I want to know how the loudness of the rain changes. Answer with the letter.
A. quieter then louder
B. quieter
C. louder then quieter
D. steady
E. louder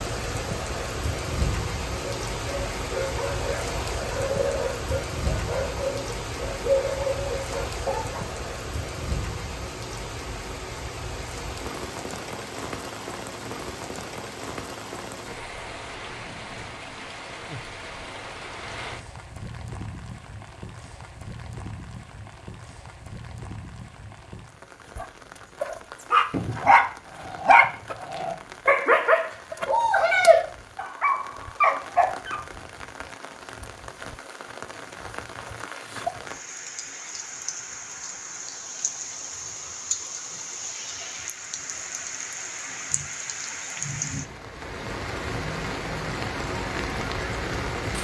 A.